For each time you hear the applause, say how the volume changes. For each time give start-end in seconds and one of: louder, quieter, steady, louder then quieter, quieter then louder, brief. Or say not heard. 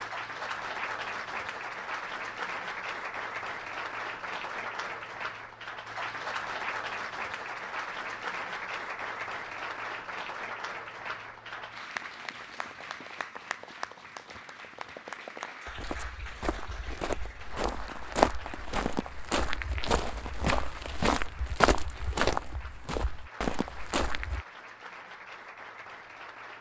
0.0-26.5 quieter.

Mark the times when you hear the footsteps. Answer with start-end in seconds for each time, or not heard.
15.7-24.4.